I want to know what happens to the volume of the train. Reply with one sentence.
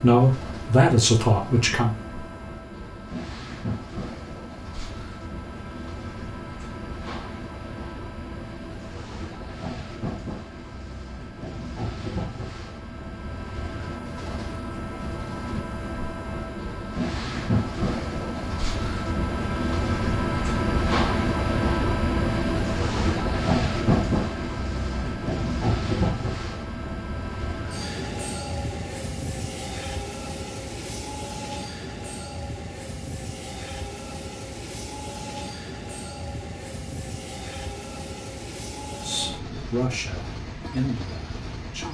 The volume of the train goes up, then down.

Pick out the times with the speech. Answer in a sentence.
You can hear the speech from 0.0 to 1.9 s and from 39.0 to 41.9 s.